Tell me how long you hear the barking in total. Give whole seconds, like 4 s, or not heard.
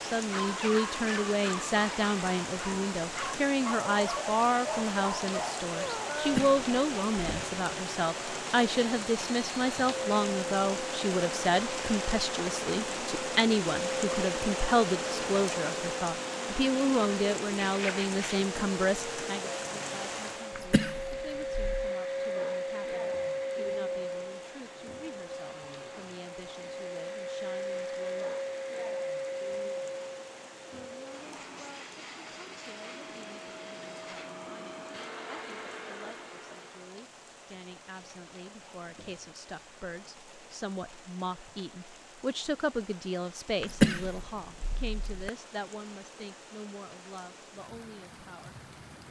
6 s.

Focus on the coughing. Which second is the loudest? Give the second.
44 s.